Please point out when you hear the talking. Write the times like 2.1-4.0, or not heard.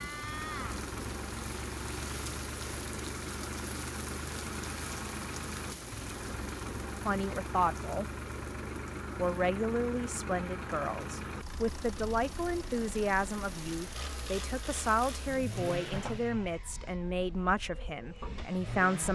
7.0-8.1, 9.2-19.0.